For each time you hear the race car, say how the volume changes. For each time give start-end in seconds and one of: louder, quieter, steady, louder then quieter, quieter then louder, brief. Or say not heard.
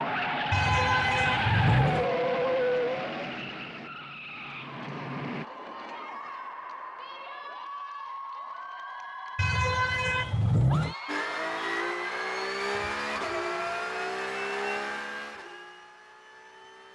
0.0-5.5 quieter
11.1-16.9 quieter.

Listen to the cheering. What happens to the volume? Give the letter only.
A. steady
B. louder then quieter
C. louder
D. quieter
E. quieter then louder
A.